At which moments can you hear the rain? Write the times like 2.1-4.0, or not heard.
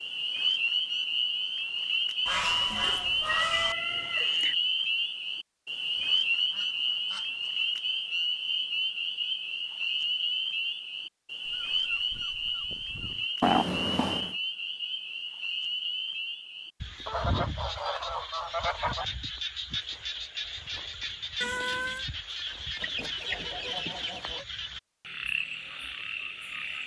not heard.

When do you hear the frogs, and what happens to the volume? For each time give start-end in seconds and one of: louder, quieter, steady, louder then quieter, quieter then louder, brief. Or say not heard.
0.0-26.8 quieter.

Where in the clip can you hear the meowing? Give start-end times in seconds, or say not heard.
2.7-4.5, 13.4-14.3, 21.4-22.1.